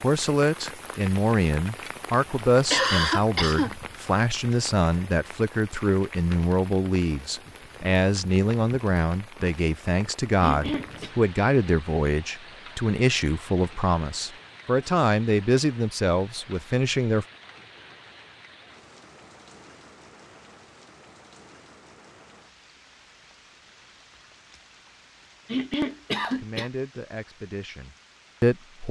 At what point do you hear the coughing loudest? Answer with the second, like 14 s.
3 s.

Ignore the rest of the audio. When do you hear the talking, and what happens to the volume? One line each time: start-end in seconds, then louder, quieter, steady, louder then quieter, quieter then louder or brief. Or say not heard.
0.0-17.2 steady
26.4-28.8 brief.